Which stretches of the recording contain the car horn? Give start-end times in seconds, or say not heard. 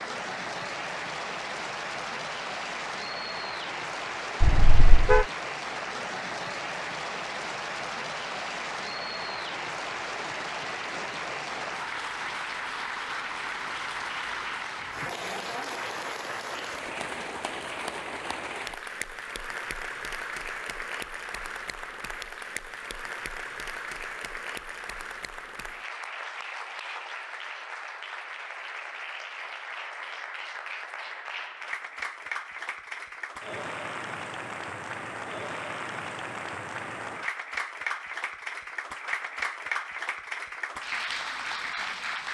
4.4-5.2.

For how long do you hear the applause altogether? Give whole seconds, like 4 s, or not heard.
42 s.